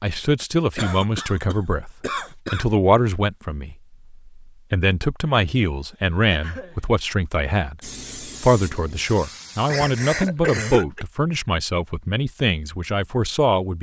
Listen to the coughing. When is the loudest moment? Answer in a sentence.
The volume of the coughing peaks at 11 seconds.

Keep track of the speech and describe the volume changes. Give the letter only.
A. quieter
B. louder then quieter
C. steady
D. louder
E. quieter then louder
C.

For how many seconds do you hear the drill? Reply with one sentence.
The drill can't be heard in this clip.